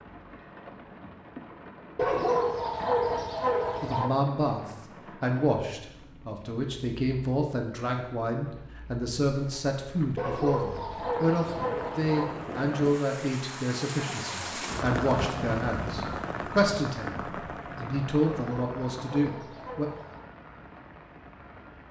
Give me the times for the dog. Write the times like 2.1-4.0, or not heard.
1.9-4.1, 10.2-12.3, 18.2-20.2.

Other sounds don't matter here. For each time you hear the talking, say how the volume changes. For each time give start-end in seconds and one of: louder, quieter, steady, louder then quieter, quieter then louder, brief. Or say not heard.
3.8-17.1 steady
17.8-19.9 brief.